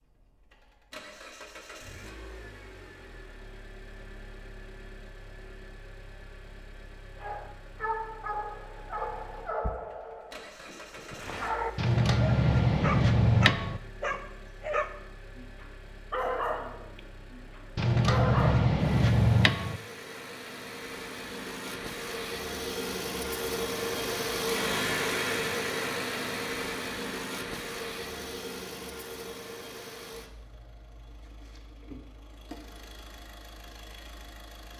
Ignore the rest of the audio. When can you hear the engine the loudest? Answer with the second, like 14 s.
25 s.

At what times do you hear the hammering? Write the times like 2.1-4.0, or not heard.
11.8-13.8, 17.8-19.8.